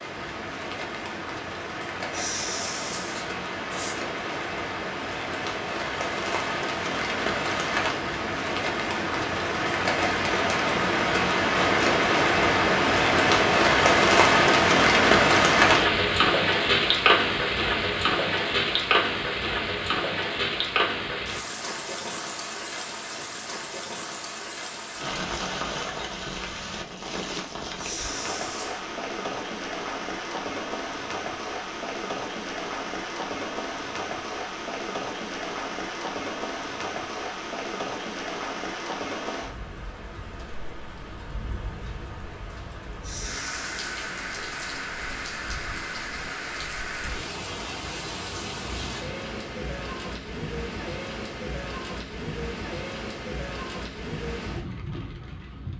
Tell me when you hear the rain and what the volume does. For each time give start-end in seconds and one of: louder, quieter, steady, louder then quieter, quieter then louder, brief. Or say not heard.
0.0-55.7 louder then quieter.